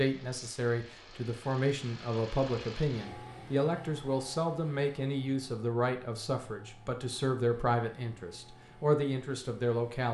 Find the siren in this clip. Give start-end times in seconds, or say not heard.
not heard.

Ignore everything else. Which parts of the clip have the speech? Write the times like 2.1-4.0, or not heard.
0.0-10.0.